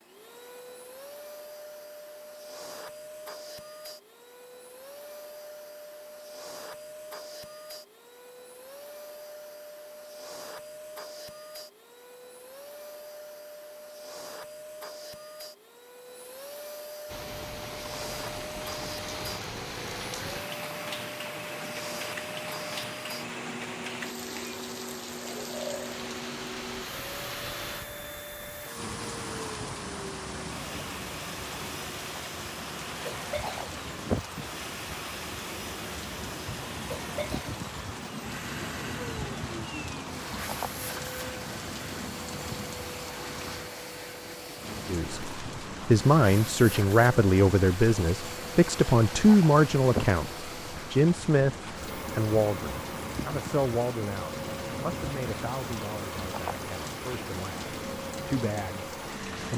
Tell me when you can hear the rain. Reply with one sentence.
The rain can be heard from 17.1 to 59.5 s.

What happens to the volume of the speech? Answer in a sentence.
The volume of the speech goes down.